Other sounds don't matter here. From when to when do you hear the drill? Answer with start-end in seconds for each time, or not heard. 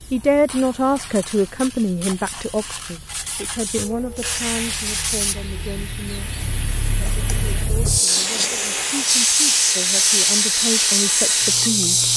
3.8-12.1.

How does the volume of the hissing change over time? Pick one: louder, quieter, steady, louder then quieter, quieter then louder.
louder.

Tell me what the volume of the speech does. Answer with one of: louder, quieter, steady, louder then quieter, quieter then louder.
quieter then louder.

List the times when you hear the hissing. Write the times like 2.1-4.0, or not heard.
0.0-12.1.